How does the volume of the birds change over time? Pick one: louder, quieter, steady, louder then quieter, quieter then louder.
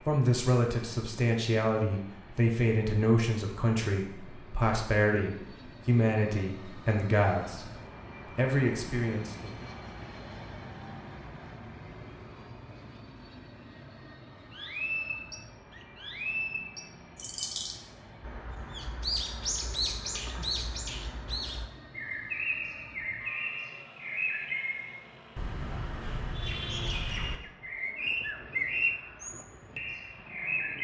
steady.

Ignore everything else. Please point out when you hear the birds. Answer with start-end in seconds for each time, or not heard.
14.5-30.7.